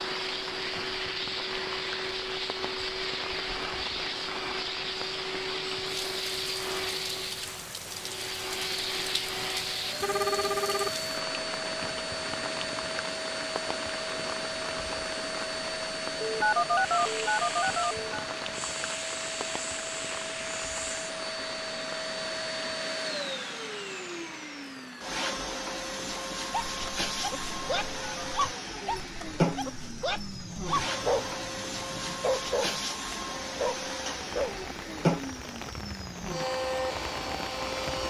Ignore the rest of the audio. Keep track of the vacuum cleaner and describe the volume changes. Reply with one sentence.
The loudness of the vacuum cleaner stays about the same.